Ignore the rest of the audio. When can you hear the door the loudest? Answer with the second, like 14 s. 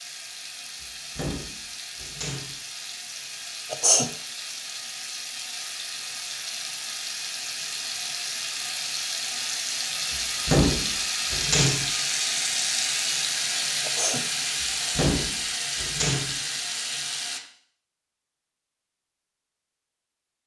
11 s.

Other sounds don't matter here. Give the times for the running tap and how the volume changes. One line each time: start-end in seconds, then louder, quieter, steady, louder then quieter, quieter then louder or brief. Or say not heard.
0.0-17.4 louder.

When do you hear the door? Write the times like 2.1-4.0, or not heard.
0.8-2.5, 10.1-11.8, 14.6-16.4.